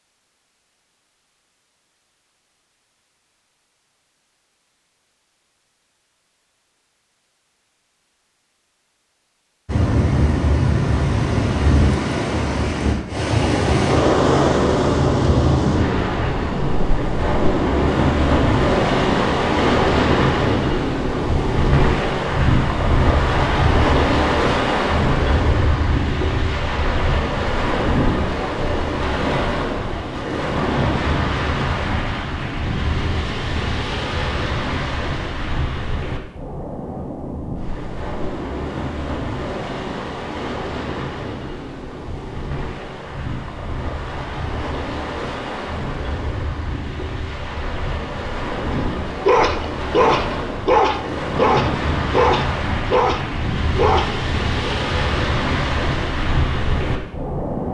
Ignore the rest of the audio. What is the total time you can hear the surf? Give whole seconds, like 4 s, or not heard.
48 s.